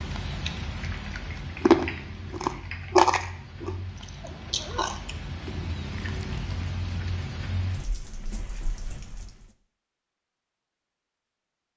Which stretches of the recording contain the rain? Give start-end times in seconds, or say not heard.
0.0-9.5.